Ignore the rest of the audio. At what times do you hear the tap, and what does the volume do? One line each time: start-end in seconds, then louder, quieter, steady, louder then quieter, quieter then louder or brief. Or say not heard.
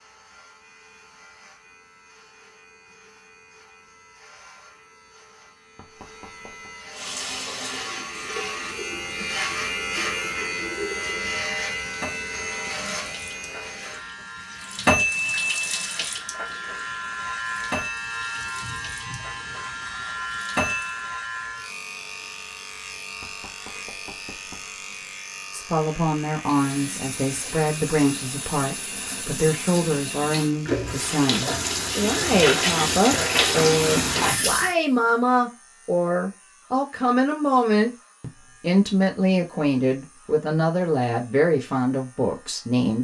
6.9-21.1 louder then quieter
26.4-34.8 louder.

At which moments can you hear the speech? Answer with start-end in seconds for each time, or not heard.
25.5-42.9.